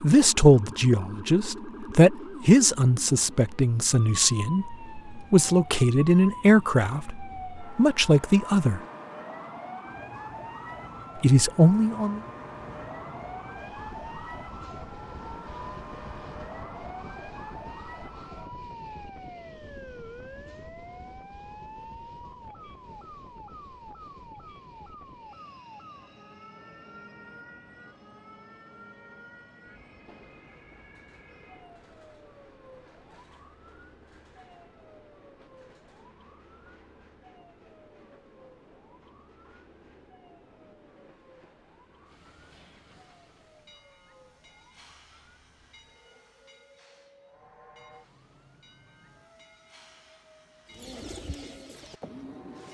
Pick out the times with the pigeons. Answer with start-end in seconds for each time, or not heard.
50.7-52.6.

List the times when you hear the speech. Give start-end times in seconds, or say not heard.
0.0-8.8, 11.2-12.2.